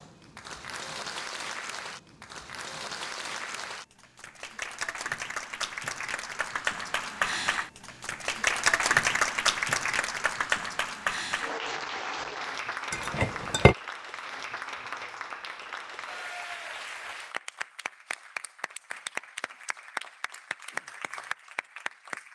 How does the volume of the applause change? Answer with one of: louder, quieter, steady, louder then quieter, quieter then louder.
louder then quieter.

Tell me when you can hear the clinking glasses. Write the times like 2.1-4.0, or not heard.
12.9-13.8.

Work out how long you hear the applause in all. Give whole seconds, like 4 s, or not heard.
22 s.